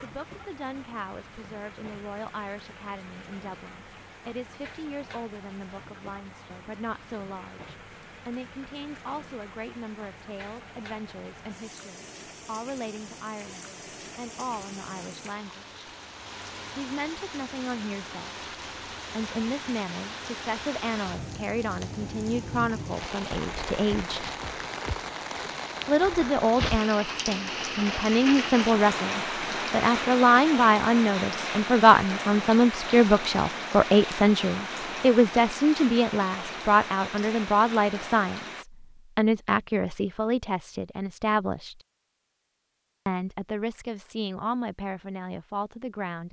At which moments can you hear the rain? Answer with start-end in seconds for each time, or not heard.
0.0-38.6.